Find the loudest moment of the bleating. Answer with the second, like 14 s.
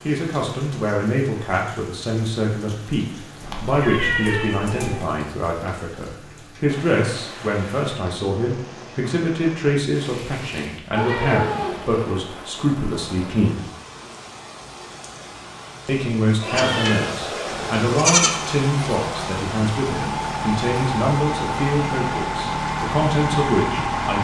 18 s.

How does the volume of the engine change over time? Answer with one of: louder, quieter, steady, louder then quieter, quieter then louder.
louder.